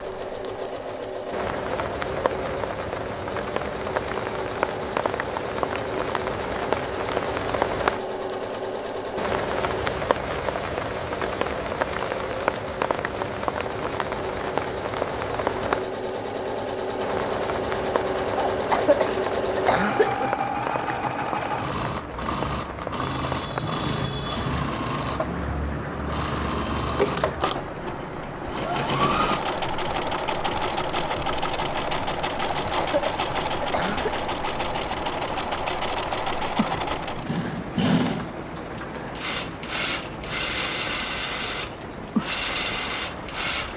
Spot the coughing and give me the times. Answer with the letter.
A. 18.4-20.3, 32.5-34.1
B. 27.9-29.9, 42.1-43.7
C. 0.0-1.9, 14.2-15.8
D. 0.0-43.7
A.